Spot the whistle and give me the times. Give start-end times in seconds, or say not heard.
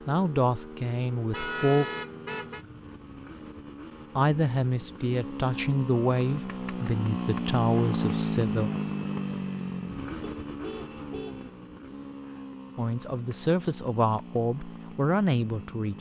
not heard.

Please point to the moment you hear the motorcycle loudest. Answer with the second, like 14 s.
8 s.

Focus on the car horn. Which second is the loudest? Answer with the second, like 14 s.
2 s.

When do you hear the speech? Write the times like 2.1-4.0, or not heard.
0.1-1.9, 4.2-8.7, 12.8-15.9.